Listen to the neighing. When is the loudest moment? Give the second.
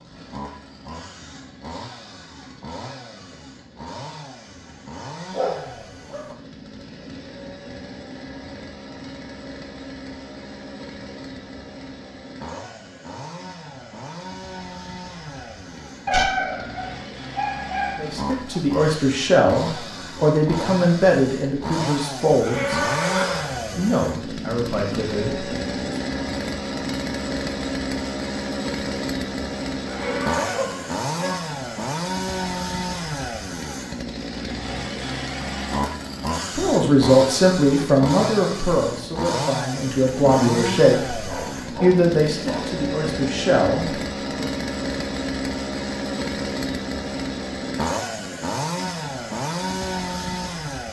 23 s.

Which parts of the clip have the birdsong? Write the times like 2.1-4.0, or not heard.
not heard.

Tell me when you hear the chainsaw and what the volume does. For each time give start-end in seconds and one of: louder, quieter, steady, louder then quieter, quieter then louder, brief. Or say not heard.
0.0-50.8 louder.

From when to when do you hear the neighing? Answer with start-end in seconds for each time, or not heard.
22.2-23.6, 29.8-30.7.